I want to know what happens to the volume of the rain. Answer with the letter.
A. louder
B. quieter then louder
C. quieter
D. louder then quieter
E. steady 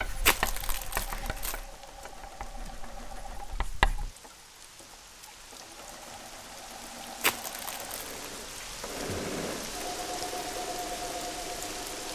A.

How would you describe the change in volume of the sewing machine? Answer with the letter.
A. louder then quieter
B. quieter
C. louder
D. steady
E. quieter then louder
C.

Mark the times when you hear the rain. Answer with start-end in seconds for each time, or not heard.
0.0-12.1.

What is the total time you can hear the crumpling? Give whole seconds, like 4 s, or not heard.
2 s.